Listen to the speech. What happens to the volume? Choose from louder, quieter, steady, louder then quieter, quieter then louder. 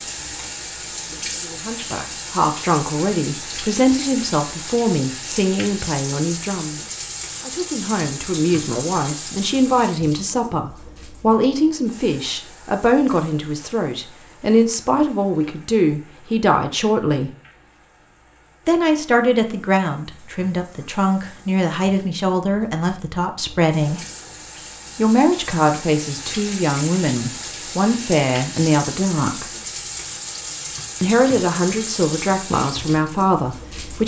steady.